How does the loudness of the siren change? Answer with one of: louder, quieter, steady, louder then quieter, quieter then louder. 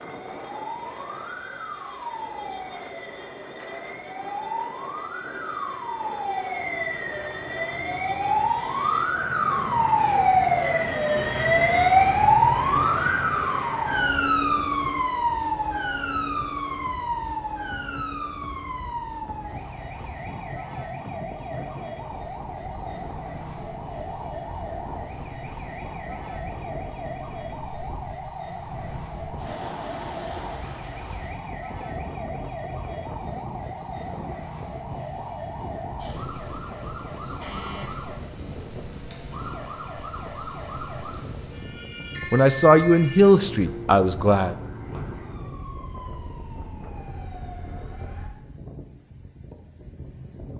louder then quieter.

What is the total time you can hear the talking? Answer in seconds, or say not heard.
2 s.